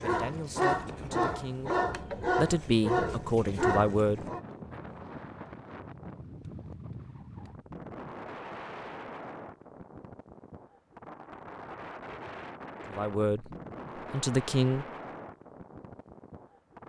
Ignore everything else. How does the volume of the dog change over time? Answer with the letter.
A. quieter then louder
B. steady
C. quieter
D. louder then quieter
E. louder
B.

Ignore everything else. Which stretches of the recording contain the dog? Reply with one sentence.
You can hear the dog from 0.0 to 4.4 s.